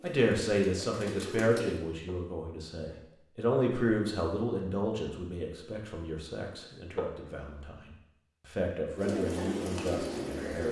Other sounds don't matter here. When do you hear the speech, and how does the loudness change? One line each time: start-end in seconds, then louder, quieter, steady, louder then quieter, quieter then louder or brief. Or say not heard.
0.0-10.6 quieter then louder.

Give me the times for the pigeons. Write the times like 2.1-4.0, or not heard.
0.0-1.8, 8.9-10.6.